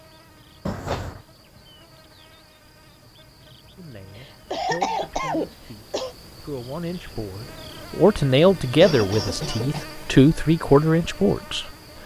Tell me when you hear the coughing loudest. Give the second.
5 s.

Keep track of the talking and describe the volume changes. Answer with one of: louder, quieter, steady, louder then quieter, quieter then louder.
louder.